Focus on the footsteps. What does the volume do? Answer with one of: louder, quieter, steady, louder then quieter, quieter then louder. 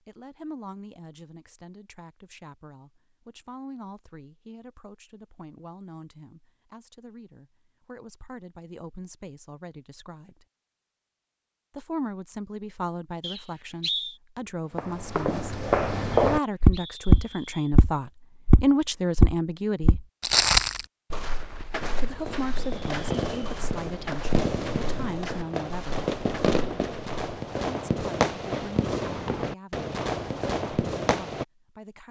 quieter.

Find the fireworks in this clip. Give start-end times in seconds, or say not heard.
21.8-31.4.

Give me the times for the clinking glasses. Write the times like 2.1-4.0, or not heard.
not heard.